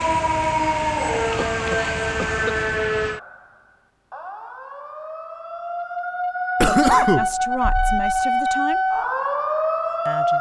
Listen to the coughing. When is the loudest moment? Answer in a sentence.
The volume of the coughing peaks at 7 seconds.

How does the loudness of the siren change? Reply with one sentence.
The loudness of the siren goes down, then up.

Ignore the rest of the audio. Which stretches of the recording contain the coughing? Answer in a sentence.
You can hear the coughing from 1.4 to 2.5 s and from 6.6 to 8.1 s.